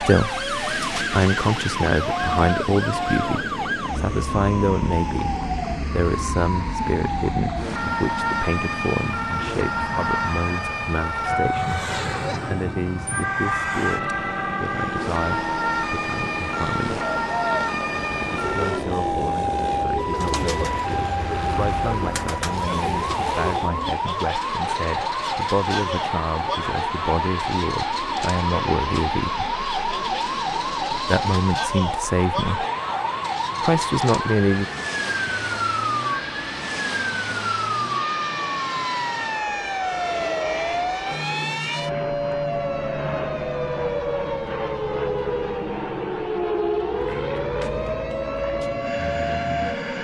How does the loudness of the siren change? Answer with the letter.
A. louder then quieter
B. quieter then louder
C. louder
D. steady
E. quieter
D.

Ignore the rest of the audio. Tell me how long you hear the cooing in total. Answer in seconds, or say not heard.
7 s.